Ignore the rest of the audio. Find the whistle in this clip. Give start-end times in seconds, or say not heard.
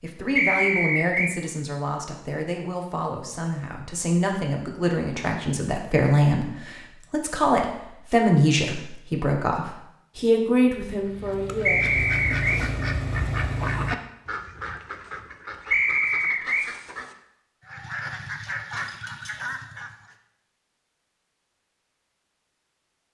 0.3-1.4, 11.7-12.7, 15.7-16.7.